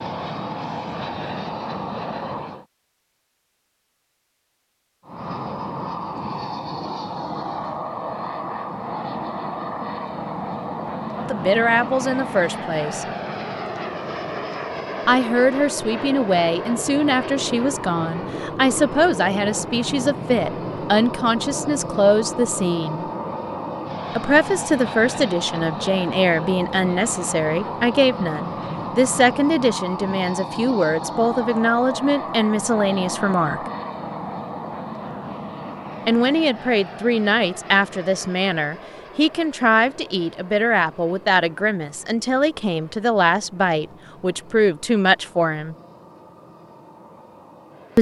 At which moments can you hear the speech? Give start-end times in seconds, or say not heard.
11.2-13.1, 15.1-23.1, 24.1-33.6, 36.0-45.8.